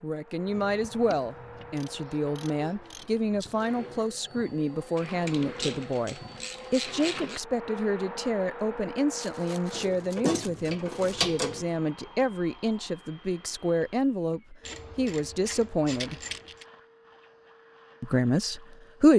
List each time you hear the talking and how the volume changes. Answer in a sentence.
You can hear the talking from 0.0 to 16.2 s, at a steady volume; and briefly from 18.0 to 19.1 s.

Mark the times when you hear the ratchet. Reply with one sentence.
The ratchet can be heard from 0.5 to 3.2 s, from 5.0 to 7.4 s, from 9.7 to 11.7 s and from 14.6 to 16.6 s.